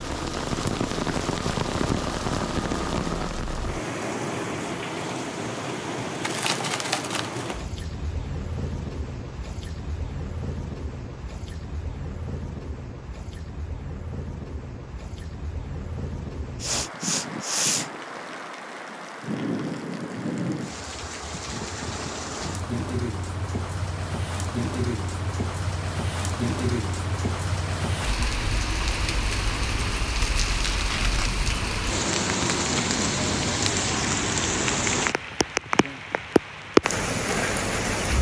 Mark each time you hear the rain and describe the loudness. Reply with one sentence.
The rain can be heard from 0.0 to 38.1 s, getting quieter then louder.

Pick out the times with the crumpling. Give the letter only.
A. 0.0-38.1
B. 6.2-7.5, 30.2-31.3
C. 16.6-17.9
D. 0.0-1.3
B.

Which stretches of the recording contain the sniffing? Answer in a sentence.
You can hear the sniffing from 16.6 to 17.9 s.